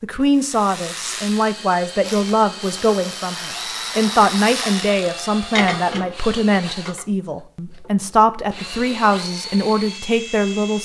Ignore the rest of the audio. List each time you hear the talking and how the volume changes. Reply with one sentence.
You can hear the talking from 0.0 to 10.8 s, at a steady volume.